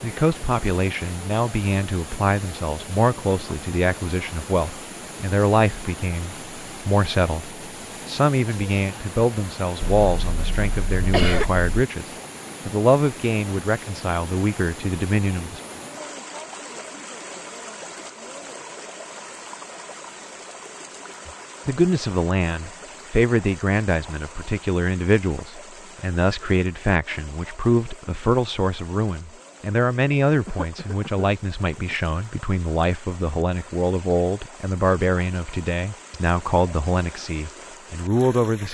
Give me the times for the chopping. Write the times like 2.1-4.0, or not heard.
not heard.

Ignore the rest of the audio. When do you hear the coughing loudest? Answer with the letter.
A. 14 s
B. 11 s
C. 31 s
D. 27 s
B.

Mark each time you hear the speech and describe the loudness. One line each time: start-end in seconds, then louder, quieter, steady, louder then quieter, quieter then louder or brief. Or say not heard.
0.0-15.6 steady
21.2-38.6 steady.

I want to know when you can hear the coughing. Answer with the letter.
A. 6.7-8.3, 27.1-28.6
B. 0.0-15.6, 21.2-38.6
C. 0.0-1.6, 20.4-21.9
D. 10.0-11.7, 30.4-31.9
D.